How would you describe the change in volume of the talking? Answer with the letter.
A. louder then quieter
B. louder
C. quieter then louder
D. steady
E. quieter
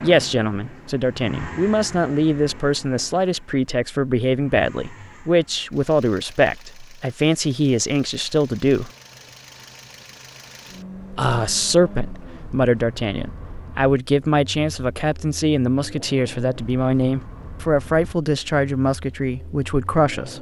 D.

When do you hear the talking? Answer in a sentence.
You can hear the talking from 0.0 to 8.9 s and from 11.1 to 20.3 s.